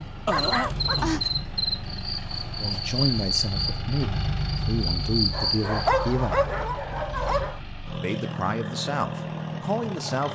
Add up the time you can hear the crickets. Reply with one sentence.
You can hear the crickets for 6 seconds altogether.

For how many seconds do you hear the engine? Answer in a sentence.
You can hear the engine for 10 seconds altogether.